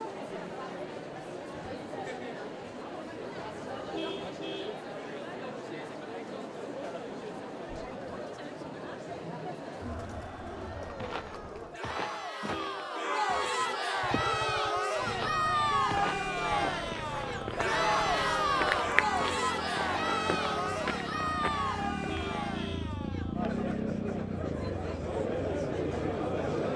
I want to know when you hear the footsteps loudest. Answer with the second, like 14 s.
19 s.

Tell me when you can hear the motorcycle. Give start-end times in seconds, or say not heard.
13.9-26.5.